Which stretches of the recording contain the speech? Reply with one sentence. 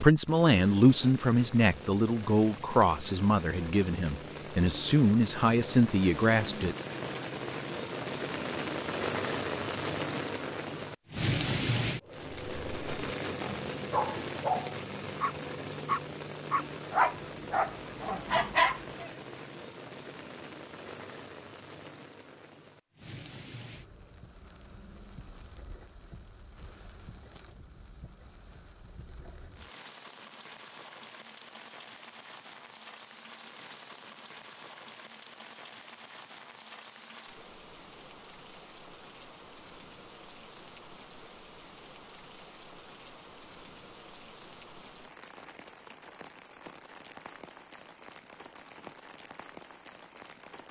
You can hear the speech from 0.0 to 6.8 s.